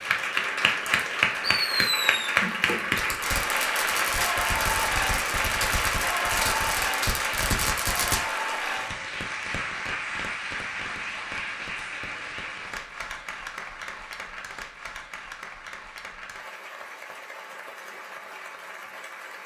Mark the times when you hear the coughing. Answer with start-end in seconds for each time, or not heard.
not heard.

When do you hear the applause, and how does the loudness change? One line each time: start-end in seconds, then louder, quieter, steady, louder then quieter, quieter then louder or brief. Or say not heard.
0.0-19.4 quieter.